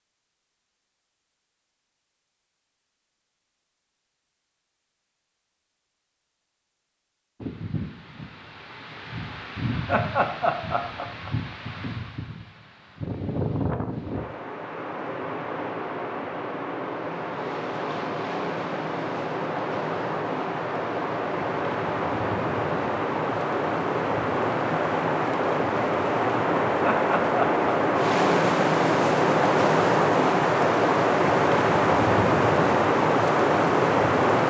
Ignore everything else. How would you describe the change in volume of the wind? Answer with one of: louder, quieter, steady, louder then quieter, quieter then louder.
louder.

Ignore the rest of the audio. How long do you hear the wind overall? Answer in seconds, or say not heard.
27 s.